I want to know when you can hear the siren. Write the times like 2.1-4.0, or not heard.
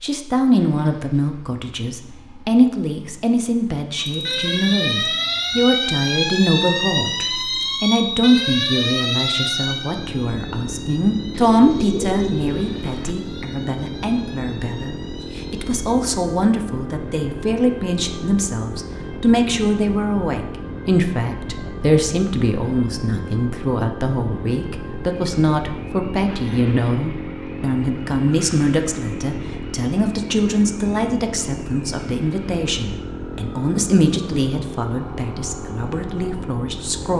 3.9-37.0.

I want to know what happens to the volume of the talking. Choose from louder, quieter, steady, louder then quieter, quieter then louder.
steady.